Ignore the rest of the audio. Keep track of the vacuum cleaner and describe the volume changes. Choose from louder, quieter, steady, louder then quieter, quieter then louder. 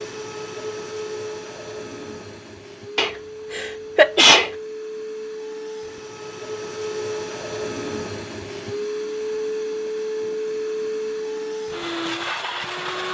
louder.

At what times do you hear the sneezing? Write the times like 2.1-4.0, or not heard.
3.0-4.5.